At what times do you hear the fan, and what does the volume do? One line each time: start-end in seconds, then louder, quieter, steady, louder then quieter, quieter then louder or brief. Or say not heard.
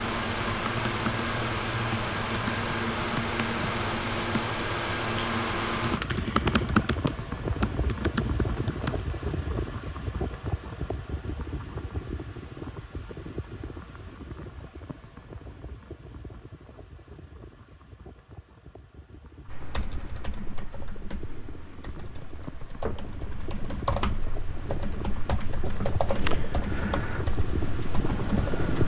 0.0-28.8 quieter then louder.